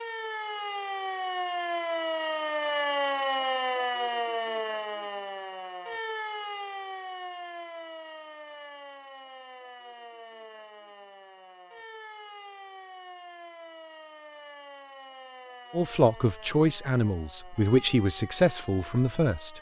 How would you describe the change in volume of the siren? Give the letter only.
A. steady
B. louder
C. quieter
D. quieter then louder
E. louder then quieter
C.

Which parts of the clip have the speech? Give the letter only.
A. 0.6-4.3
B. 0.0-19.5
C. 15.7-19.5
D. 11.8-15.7
C.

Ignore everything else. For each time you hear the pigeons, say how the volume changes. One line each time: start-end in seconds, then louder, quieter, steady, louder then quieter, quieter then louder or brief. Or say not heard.
not heard.